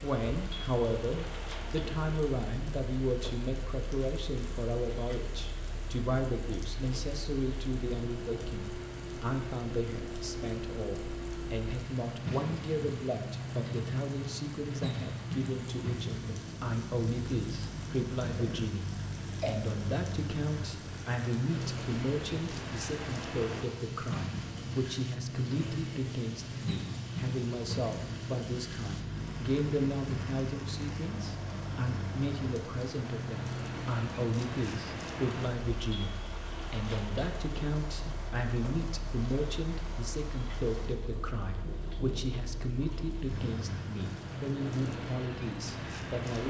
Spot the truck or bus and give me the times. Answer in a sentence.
You can hear the truck or bus from 0.2 to 46.4 s.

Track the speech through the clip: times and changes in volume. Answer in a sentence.
The speech can be heard from 0.0 to 46.4 s, at a steady volume.